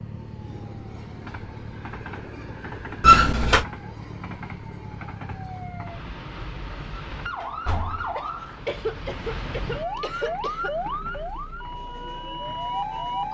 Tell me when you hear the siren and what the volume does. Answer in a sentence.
You can hear the siren from 0.0 to 13.2 s, getting louder.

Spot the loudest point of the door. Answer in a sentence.
The loudest moment of the door is at 3 seconds.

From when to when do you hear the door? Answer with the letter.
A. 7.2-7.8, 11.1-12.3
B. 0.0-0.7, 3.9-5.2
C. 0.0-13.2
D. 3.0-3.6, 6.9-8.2
D.